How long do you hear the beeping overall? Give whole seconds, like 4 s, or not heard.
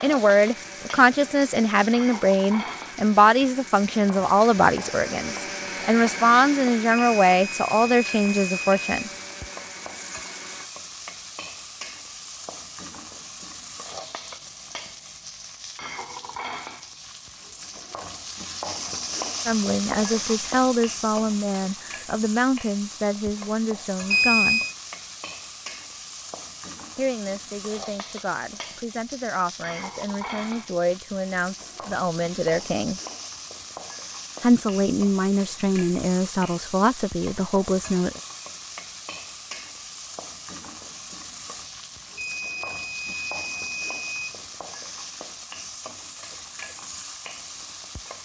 5 s.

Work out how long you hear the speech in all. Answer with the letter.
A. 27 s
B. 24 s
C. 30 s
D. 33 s
B.